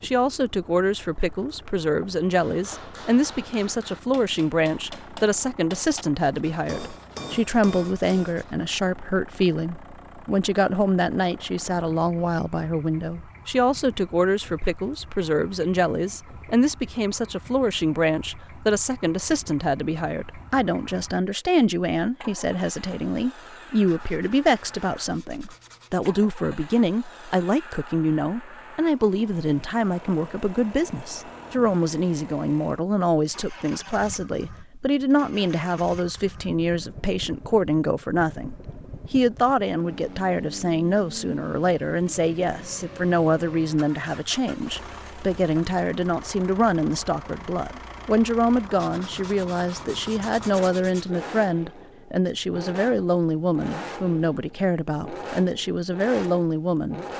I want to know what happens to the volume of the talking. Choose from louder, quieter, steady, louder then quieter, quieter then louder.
steady.